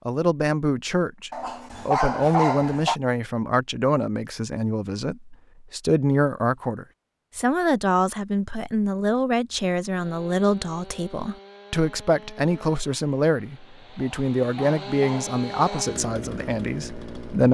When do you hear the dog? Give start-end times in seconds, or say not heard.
1.3-3.0, 13.9-15.8.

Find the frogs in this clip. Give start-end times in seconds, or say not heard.
not heard.